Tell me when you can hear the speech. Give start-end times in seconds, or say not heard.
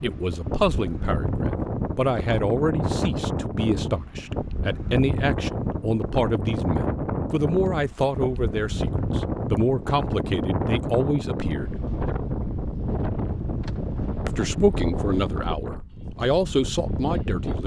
0.0-11.7, 14.2-17.6.